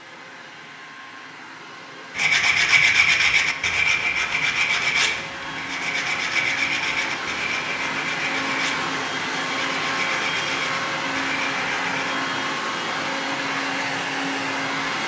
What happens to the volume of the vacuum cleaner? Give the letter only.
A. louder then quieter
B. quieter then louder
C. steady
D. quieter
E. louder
E.